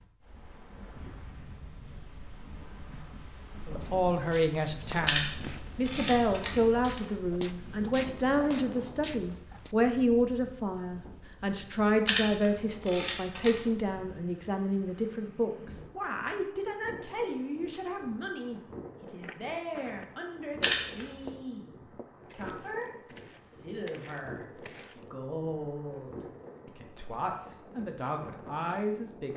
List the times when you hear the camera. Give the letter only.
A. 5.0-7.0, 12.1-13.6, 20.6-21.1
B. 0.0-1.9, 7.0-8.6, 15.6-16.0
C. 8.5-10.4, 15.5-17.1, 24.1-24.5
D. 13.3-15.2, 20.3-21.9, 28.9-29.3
A.